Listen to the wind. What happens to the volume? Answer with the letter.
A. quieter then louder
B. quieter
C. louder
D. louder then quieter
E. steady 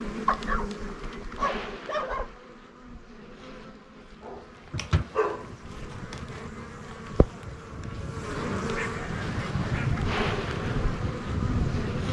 C.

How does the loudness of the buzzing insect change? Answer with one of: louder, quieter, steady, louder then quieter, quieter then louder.
quieter then louder.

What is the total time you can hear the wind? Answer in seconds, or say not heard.
7 s.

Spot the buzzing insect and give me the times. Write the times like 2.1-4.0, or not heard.
0.0-12.0.